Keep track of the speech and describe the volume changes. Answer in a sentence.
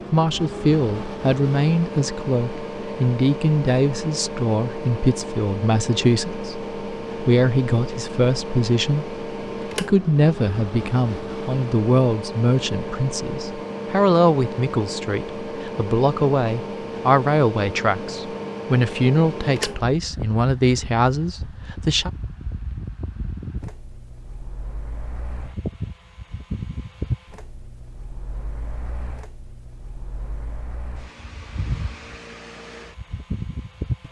The volume of the speech stays about the same.